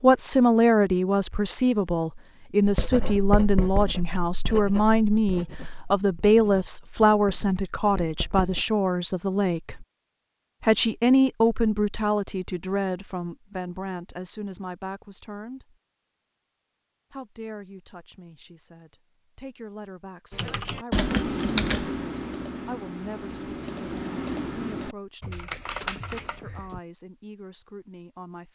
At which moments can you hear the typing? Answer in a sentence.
You can hear the typing from 20.3 to 26.8 s.